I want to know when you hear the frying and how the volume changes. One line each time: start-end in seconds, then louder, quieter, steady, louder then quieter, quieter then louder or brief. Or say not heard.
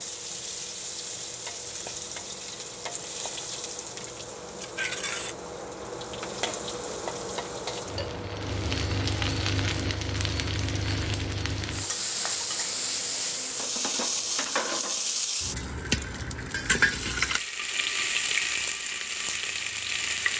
0.0-20.3 louder.